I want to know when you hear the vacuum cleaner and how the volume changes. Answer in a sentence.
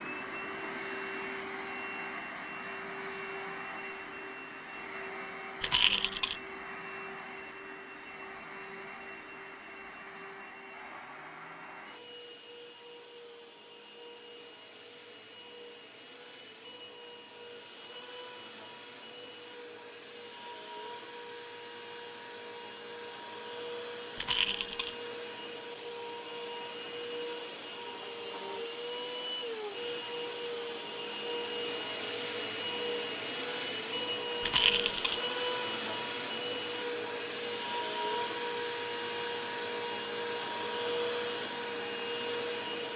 The vacuum cleaner can be heard from 0.0 to 42.9 s, getting quieter then louder.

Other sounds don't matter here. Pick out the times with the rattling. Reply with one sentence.
You can hear the rattling from 5.6 to 6.3 s, from 24.1 to 24.9 s and from 34.4 to 35.2 s.